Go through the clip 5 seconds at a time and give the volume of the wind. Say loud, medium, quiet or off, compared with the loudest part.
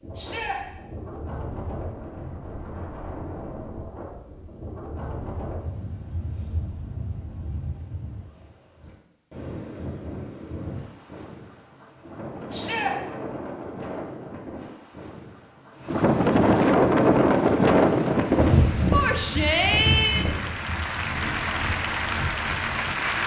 quiet, quiet, quiet, loud, quiet.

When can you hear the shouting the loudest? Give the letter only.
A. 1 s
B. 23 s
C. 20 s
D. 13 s
C.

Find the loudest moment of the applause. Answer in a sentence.
The loudest moment of the applause is at 23 seconds.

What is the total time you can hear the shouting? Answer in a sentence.
The shouting can be heard for 2 seconds in total.